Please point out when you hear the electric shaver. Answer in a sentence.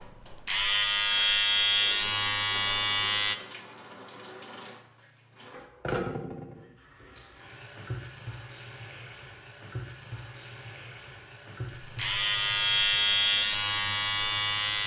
You can hear the electric shaver from 0.0 to 3.4 s and from 11.8 to 14.8 s.